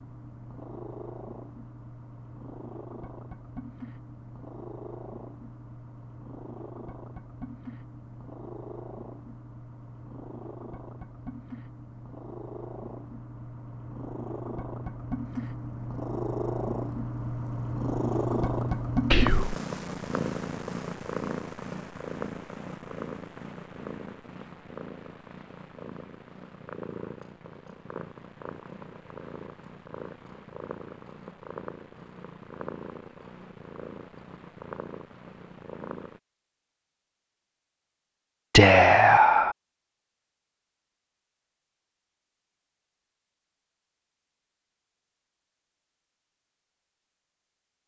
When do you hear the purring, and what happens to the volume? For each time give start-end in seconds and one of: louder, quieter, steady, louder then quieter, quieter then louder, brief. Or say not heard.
0.0-36.2 louder then quieter.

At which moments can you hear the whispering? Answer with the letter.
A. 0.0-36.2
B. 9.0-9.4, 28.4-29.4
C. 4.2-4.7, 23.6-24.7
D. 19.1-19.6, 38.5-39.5
D.